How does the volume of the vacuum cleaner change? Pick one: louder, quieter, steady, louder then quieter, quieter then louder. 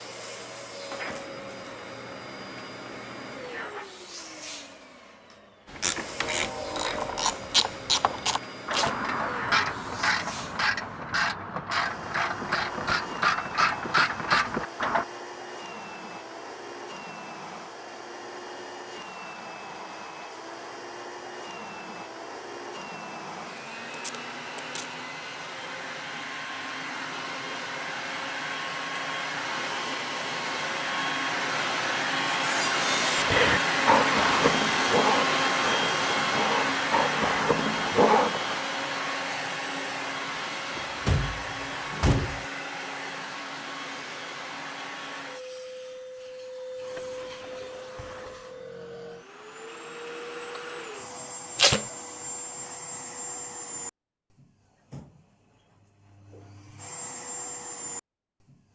louder then quieter.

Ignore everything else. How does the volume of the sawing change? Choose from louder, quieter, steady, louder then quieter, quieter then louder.
quieter then louder.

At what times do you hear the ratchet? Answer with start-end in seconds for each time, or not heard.
5.7-15.1.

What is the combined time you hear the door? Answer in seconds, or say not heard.
2 s.